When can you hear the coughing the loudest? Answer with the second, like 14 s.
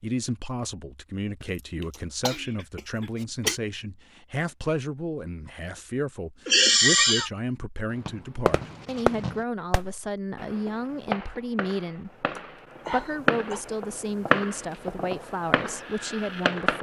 7 s.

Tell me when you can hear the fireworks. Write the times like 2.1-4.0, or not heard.
8.1-16.7.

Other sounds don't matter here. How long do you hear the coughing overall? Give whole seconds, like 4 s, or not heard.
4 s.